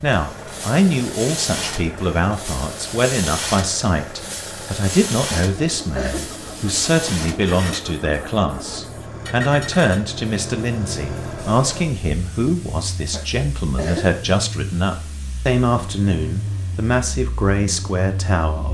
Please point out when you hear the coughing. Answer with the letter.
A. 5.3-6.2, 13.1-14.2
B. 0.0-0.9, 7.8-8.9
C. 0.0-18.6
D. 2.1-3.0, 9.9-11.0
A.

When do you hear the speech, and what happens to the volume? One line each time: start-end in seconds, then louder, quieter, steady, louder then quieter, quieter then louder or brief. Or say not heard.
0.0-18.6 steady.